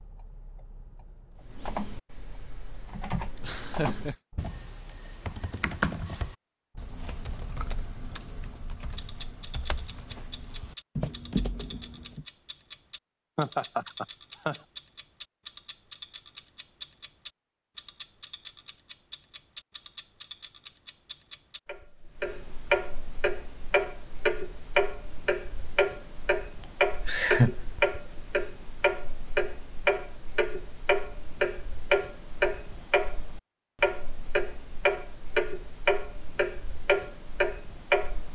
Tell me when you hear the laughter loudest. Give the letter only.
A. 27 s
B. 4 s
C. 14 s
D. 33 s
A.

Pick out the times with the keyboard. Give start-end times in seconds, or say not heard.
1.4-12.2.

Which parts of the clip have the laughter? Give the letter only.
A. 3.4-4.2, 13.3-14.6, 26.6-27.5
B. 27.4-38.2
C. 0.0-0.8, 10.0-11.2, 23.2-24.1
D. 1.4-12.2
A.